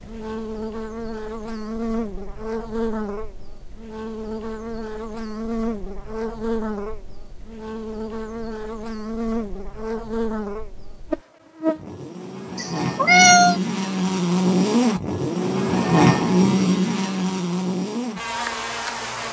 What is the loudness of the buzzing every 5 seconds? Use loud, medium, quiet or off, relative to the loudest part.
medium, medium, loud, loud.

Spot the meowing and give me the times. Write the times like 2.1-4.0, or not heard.
12.6-13.6.